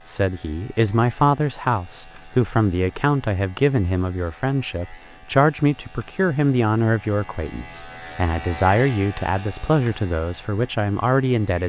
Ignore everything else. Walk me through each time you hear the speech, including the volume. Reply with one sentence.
The speech can be heard from 0.1 to 11.6 s, at a steady volume.